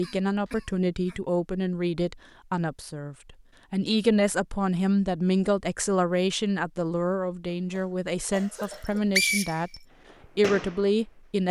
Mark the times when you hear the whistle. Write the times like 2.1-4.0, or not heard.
8.7-9.8.